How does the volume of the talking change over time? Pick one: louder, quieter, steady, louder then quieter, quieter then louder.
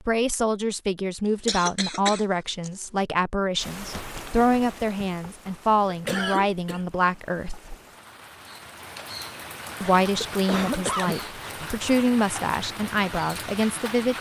steady.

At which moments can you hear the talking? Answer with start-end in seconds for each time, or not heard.
0.1-7.8, 9.8-14.1.